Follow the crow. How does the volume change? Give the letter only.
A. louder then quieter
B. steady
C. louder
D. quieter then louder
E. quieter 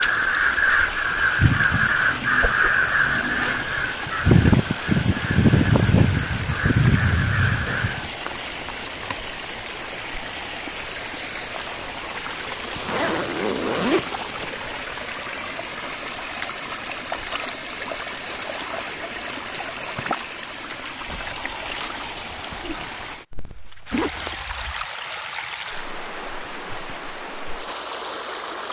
B.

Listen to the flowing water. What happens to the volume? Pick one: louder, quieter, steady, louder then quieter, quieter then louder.
steady.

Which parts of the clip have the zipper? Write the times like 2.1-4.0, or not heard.
1.9-4.0, 12.8-14.5, 23.9-24.9.